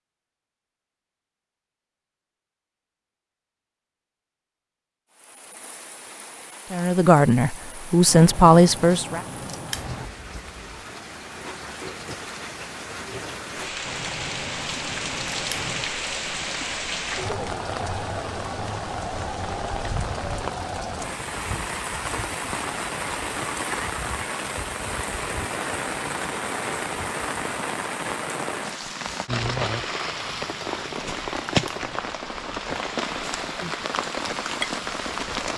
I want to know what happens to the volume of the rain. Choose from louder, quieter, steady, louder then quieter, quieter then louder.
louder.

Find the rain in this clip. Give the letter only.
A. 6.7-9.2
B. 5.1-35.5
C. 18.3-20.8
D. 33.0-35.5
B.